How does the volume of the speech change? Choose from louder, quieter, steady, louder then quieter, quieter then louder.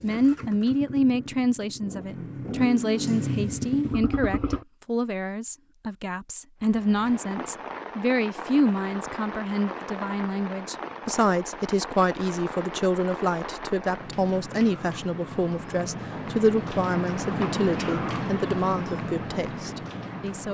steady.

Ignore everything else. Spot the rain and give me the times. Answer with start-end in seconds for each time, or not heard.
6.6-20.4.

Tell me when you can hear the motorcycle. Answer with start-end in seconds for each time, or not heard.
0.0-4.7.